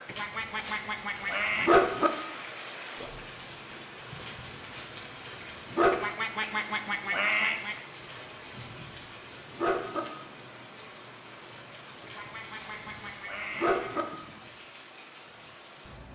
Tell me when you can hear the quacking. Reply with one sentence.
The quacking can be heard from 0.1 to 1.7 s, from 5.9 to 7.8 s and from 12.1 to 14.1 s.